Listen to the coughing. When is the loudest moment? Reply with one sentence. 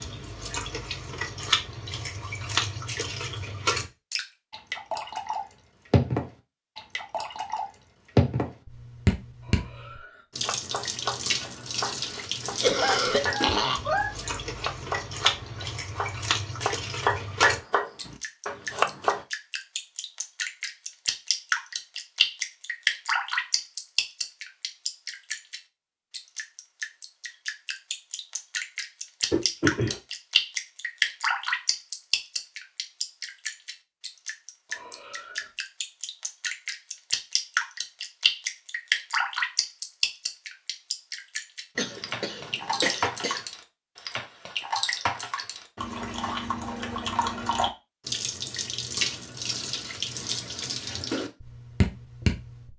The loudest moment of the coughing is at 13 seconds.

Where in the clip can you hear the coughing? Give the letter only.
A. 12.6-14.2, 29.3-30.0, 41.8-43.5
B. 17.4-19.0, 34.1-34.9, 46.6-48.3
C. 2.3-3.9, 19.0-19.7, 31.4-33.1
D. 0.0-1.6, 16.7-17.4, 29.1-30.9
A.